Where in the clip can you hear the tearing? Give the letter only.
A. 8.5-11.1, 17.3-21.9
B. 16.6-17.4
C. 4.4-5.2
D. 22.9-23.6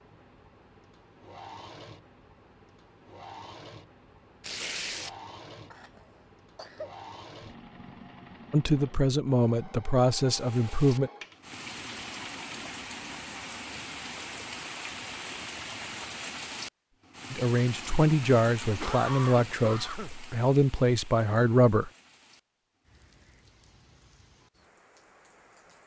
C.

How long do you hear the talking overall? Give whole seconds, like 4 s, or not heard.
7 s.